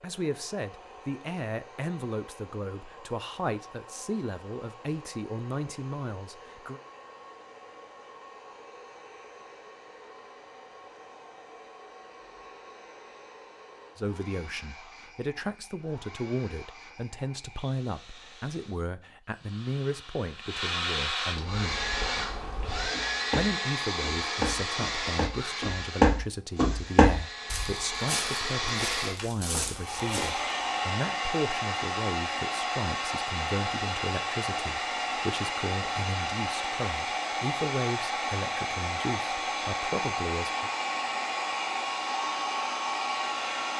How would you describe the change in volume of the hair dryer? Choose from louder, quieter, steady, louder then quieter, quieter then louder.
louder.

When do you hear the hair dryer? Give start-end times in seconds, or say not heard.
0.0-43.7.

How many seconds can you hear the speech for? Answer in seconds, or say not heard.
32 s.